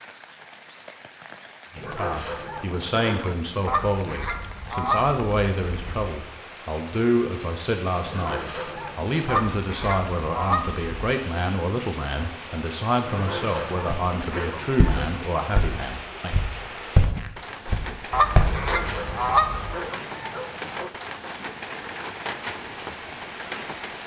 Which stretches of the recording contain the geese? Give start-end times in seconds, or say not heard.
3.6-6.0, 9.2-11.0, 18.1-19.8.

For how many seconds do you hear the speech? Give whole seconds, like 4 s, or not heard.
15 s.